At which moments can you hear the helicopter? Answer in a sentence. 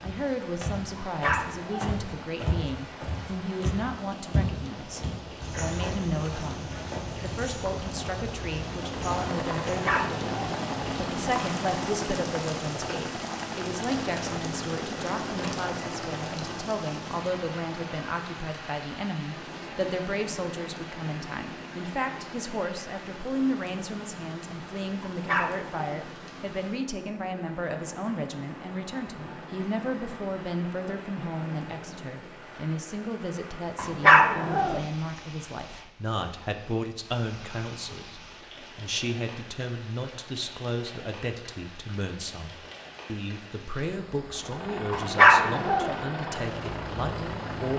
The helicopter can be heard from 8.6 to 32.6 s and from 44.2 to 47.7 s.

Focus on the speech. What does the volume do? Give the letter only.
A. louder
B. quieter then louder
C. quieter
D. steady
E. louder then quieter
D.